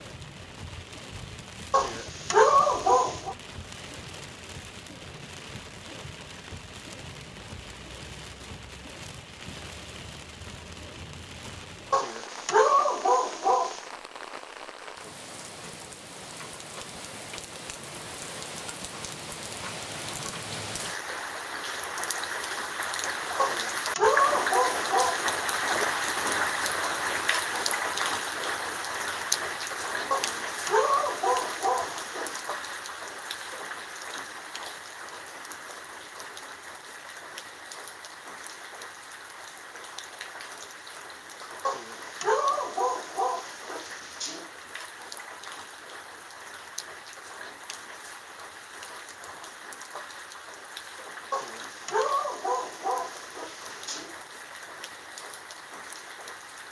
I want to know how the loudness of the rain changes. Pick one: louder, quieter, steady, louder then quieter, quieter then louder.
louder then quieter.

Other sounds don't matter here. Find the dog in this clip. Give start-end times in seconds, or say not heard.
1.7-3.4, 11.9-13.8, 23.4-25.2, 30.1-32.4, 41.6-44.5, 51.3-54.1.